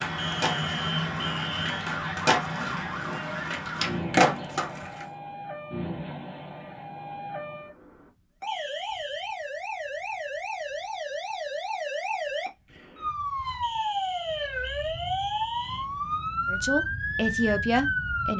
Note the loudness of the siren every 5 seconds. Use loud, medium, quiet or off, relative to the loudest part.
loud, medium, loud, loud.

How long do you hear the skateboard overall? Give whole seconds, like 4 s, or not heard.
5 s.